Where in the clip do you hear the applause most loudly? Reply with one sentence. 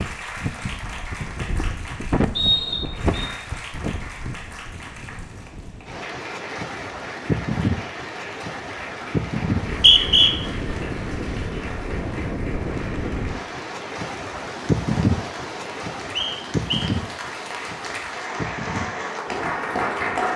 The volume of the applause peaks at 20 seconds.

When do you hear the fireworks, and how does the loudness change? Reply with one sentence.
The fireworks can't be heard in this clip.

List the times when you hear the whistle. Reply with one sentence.
You can hear the whistle from 2.4 to 3.3 s, from 9.7 to 10.3 s and from 16.1 to 16.9 s.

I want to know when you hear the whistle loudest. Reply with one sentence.
The volume of the whistle peaks at 10 seconds.